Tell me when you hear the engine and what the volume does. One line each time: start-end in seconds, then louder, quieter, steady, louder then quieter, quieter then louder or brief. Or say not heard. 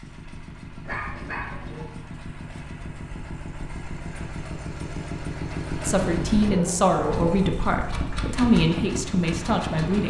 0.0-10.0 louder.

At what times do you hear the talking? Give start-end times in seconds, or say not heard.
5.8-10.0.